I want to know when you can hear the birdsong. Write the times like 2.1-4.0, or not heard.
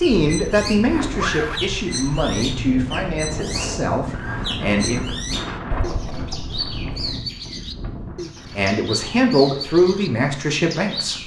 0.1-11.2.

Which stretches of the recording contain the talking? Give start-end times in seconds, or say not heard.
0.0-5.0, 8.6-11.2.